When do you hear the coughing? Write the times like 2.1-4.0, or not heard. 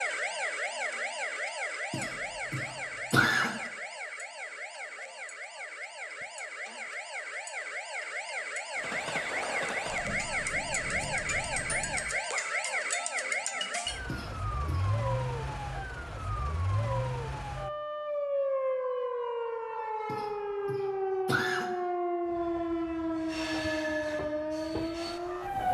1.9-3.5, 14.1-15.0, 20.1-21.7.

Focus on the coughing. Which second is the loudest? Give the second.
3 s.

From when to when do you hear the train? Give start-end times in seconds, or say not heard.
8.8-12.2, 22.2-25.6.